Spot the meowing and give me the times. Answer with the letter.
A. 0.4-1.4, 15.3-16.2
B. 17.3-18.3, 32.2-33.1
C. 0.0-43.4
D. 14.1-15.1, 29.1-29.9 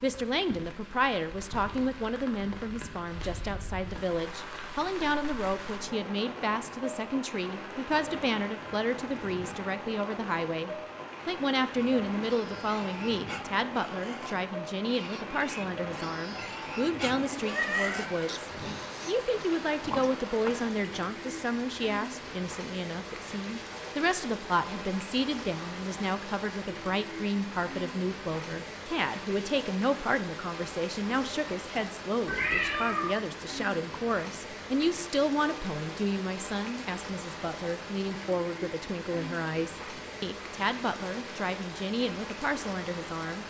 B.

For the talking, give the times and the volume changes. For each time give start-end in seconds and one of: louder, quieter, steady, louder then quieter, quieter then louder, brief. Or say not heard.
0.0-43.4 steady.